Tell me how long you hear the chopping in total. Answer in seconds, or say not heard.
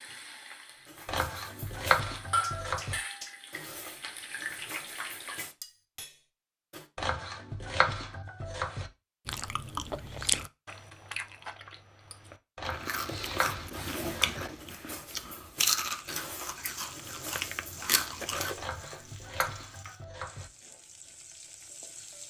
8 s.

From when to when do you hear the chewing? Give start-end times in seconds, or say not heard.
9.2-18.6.